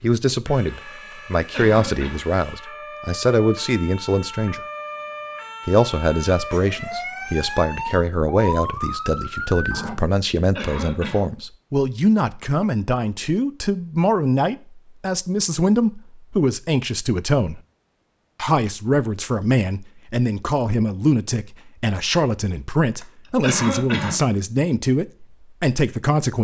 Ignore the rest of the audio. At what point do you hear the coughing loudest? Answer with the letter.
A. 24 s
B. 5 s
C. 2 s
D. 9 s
A.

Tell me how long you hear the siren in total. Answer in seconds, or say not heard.
10 s.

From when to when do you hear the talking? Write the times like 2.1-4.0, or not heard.
0.0-4.6, 5.7-17.6, 18.4-26.3.